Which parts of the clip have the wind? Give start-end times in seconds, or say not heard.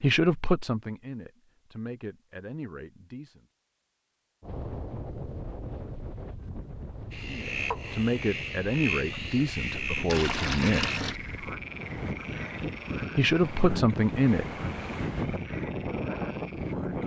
4.4-17.0.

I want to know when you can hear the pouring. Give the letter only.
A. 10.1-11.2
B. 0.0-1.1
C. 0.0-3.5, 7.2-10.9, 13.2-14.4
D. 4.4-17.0
A.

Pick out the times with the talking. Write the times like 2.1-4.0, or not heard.
0.0-3.5, 7.2-10.9, 13.2-14.4.